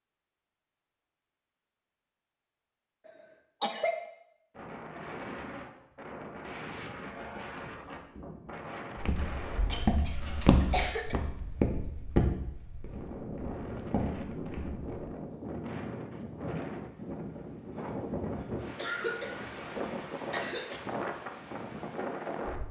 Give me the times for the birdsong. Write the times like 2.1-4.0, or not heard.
not heard.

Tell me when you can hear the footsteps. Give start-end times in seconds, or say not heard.
8.9-15.1.